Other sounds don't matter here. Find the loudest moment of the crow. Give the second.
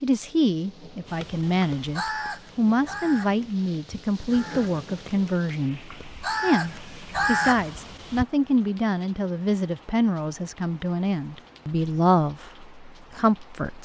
7 s.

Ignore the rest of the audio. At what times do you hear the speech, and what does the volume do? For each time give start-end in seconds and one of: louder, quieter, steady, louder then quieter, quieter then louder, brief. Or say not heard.
0.0-13.7 steady.